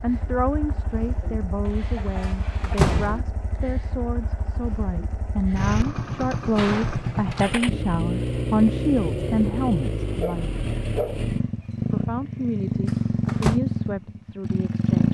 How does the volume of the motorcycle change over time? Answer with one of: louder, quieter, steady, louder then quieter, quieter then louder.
louder.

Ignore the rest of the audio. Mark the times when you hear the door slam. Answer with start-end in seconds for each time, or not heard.
2.2-3.2, 6.3-7.5, 12.8-13.6.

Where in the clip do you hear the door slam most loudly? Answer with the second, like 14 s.
3 s.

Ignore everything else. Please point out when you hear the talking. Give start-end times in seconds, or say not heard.
0.0-10.5, 11.9-15.0.